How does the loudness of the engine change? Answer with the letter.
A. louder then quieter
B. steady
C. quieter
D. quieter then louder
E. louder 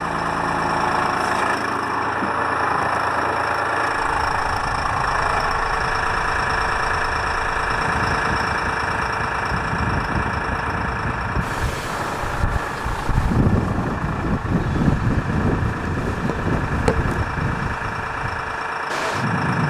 C.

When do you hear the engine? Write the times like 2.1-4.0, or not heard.
0.0-19.6.